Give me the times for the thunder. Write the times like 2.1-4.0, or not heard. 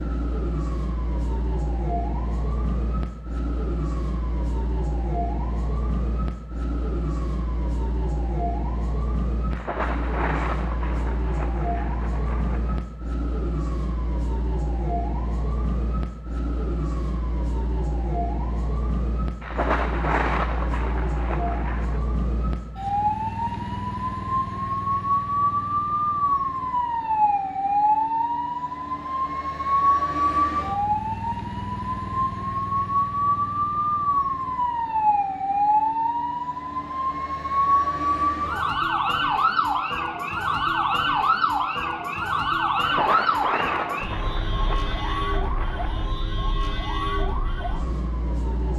9.5-12.8, 19.4-22.0, 42.8-46.1.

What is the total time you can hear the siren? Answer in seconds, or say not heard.
49 s.